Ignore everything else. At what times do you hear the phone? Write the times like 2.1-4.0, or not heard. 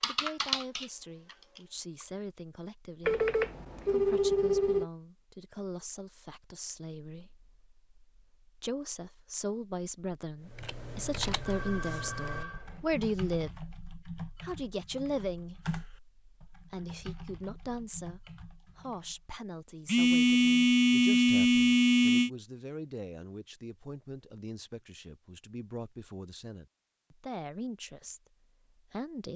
3.0-4.8, 11.3-13.1, 19.9-22.3.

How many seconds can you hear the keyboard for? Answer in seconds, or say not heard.
11 s.